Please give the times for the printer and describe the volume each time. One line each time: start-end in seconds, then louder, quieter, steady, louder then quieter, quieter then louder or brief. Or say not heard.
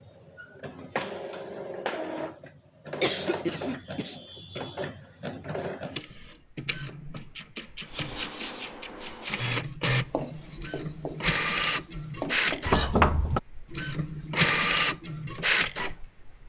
0.0-16.4 louder.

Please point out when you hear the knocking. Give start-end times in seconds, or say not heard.
12.7-13.4.